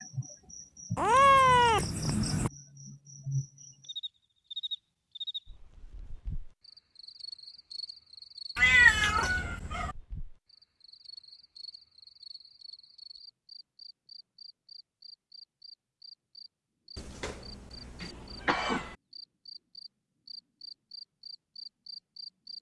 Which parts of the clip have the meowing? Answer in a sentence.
The meowing can be heard from 0.9 to 2.5 s, from 8.6 to 9.9 s and from 16.9 to 18.9 s.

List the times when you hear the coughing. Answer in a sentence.
The coughing can be heard from 18.0 to 18.9 s.